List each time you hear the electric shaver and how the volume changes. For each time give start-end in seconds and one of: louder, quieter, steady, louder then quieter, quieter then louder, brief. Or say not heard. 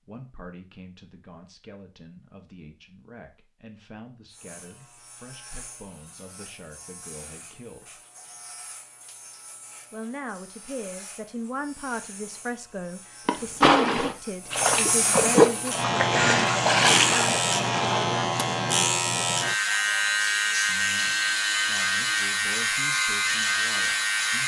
4.3-24.4 louder.